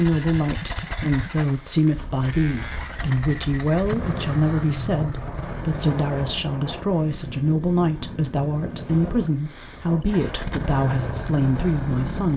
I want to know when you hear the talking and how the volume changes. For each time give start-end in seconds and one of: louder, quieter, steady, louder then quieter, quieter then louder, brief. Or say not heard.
0.0-12.3 steady.